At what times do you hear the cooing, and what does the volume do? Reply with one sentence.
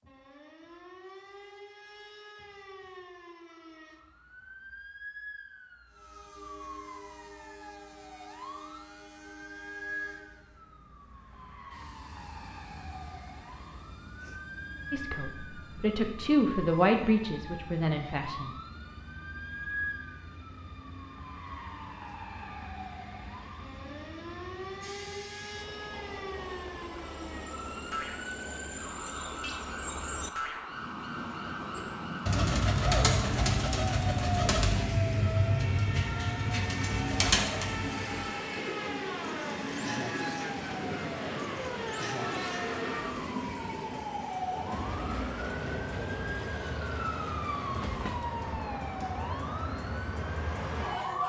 The cooing can be heard from 31.8 to 42.7 s, getting quieter.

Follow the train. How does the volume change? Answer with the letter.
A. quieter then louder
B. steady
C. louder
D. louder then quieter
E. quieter
C.